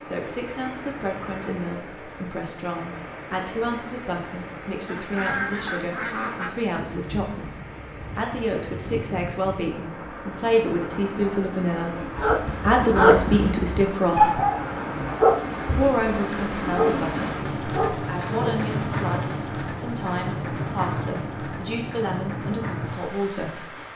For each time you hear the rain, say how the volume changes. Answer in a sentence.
The rain can be heard from 0.0 to 23.9 s, getting louder.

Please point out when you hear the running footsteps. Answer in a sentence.
The running footsteps can't be heard in this clip.